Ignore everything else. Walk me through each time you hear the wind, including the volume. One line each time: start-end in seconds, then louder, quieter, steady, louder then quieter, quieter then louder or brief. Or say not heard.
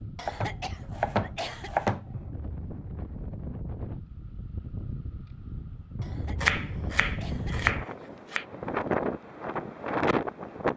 0.0-10.7 louder.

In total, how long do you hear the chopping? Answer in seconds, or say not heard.
4 s.